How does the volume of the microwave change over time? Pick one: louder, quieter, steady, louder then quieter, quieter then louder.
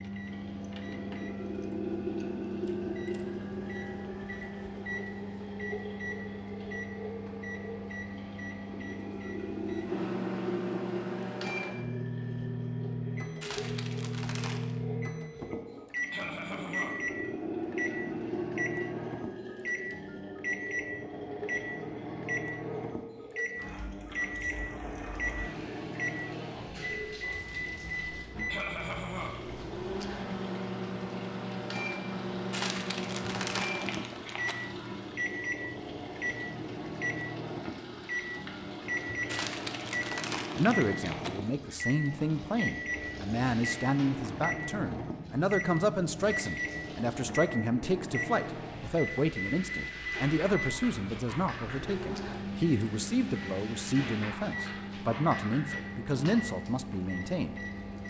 steady.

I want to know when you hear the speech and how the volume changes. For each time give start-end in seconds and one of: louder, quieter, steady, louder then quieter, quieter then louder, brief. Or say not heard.
40.5-57.5 steady.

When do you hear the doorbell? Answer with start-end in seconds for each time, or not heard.
not heard.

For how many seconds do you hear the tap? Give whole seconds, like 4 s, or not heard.
58 s.